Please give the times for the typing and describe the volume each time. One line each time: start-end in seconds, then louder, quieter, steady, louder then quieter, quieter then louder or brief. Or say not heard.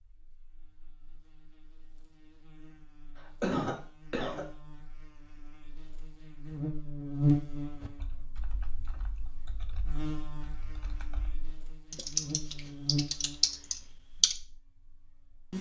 7.8-14.4 louder.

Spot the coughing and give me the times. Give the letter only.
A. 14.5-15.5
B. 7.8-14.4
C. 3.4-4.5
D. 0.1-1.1
C.